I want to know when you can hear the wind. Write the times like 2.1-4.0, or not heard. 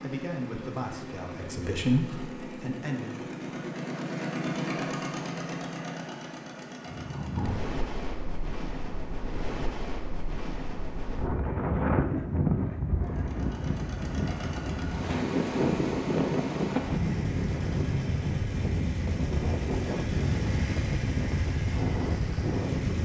6.8-22.9.